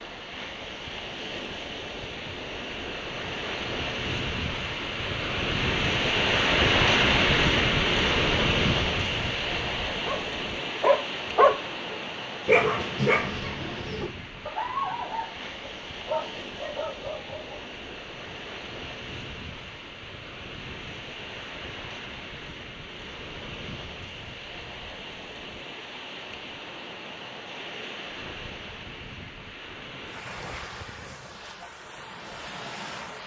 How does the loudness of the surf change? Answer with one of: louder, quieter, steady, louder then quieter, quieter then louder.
quieter.